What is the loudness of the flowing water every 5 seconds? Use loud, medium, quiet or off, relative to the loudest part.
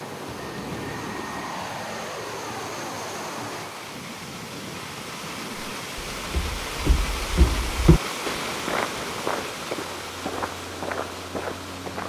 medium, loud, medium.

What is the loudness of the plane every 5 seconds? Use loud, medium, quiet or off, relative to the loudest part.
loud, medium, medium.